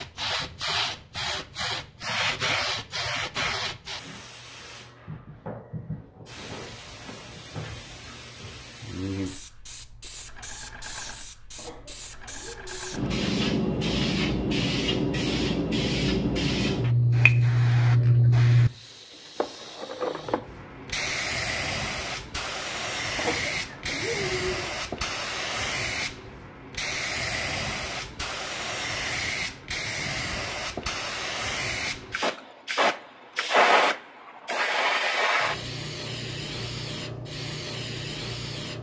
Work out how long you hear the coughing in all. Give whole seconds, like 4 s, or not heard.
3 s.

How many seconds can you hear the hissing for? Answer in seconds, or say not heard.
39 s.